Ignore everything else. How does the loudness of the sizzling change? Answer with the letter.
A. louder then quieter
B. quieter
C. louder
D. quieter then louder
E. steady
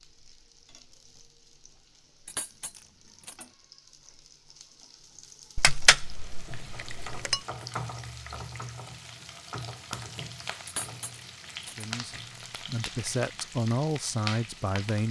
C.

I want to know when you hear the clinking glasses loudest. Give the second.
6 s.